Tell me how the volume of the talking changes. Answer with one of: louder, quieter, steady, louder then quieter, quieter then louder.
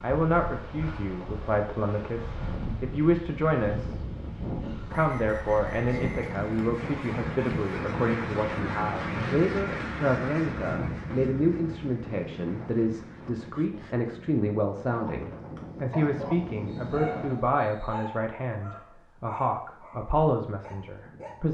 steady.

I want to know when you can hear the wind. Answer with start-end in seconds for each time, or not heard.
0.0-17.6.